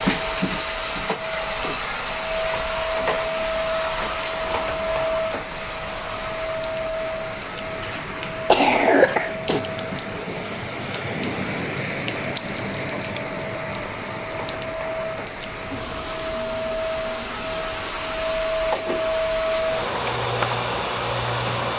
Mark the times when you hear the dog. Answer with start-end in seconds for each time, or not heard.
not heard.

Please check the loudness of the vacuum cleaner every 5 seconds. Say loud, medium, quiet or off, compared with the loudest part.
loud, medium, medium, loud, loud.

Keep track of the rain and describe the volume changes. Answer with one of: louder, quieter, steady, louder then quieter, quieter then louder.
louder then quieter.